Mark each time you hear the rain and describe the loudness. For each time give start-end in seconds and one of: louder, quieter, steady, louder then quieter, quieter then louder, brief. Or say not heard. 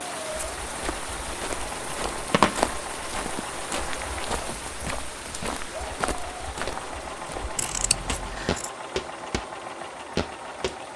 0.0-10.9 quieter.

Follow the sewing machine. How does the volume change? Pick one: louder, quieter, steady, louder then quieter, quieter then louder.
steady.